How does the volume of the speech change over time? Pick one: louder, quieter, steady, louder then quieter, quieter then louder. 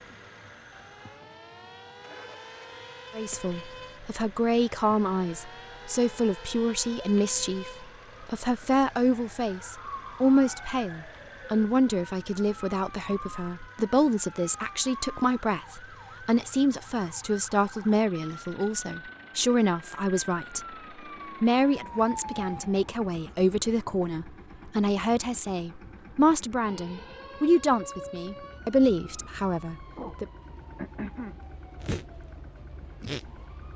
steady.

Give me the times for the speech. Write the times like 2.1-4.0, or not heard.
3.1-20.6, 21.4-30.2.